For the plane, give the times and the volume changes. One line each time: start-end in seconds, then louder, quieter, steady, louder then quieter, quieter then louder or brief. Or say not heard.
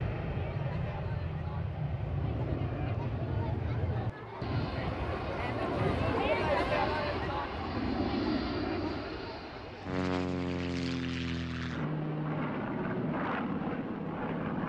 0.0-14.6 steady.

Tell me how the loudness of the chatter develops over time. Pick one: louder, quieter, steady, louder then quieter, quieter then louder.
louder then quieter.